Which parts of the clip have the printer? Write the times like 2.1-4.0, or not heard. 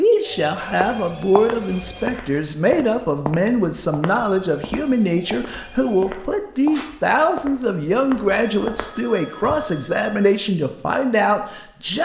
not heard.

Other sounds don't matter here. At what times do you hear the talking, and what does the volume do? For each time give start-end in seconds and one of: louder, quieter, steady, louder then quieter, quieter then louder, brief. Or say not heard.
0.0-12.0 steady.